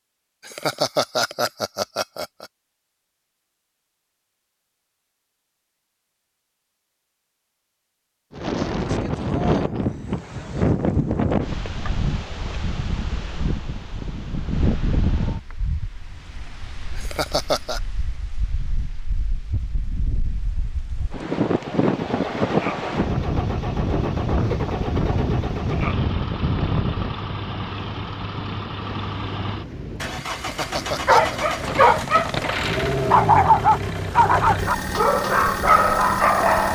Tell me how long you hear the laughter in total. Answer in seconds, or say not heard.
4 s.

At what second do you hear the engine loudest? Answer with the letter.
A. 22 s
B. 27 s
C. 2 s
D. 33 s
D.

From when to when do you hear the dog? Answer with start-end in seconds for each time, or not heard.
30.9-36.6.